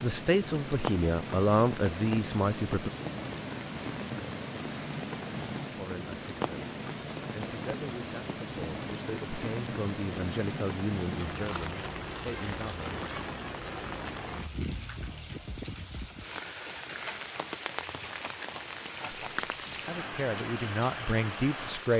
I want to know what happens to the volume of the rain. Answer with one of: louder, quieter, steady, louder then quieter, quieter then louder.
steady.